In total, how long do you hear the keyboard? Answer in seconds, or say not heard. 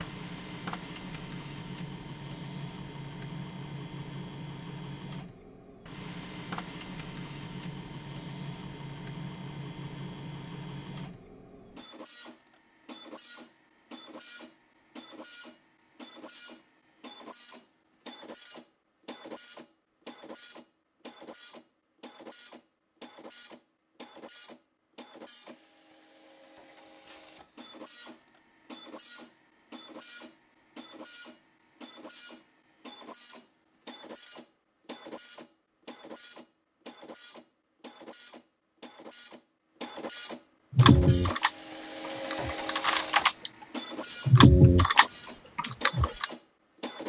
5 s.